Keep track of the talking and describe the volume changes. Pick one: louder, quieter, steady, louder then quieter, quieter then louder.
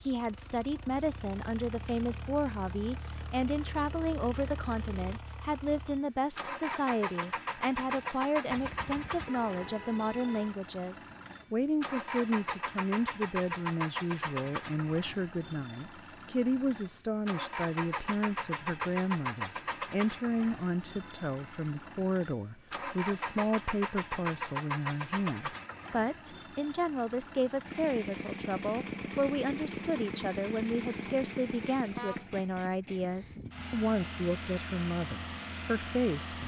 steady.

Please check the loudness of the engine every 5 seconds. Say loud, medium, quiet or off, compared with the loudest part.
medium, loud, loud, loud, loud, loud, loud, loud.